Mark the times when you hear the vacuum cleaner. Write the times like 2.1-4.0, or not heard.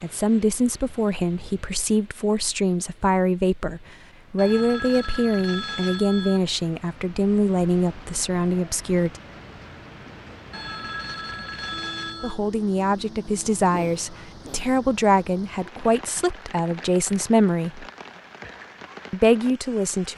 not heard.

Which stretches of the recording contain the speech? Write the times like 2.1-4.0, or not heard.
0.0-9.2, 12.2-17.9, 19.1-20.1.